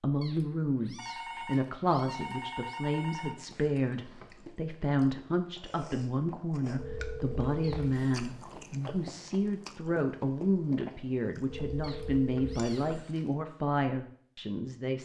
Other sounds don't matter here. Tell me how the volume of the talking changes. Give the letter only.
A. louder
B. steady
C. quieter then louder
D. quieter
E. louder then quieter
B.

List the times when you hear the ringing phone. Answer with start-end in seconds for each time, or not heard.
0.9-3.4, 6.8-8.3, 11.5-13.1.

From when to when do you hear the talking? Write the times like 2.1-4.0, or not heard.
0.0-15.0.